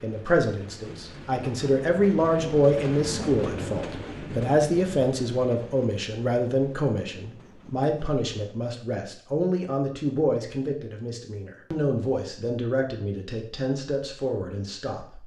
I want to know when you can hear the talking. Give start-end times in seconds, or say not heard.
0.0-15.2.